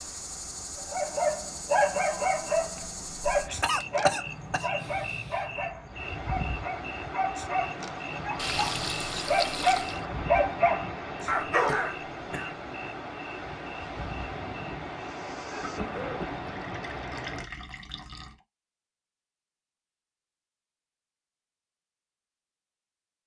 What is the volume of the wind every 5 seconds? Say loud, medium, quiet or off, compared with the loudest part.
quiet, loud, loud, loud, off.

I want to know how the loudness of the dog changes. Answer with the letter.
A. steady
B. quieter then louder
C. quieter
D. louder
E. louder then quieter
B.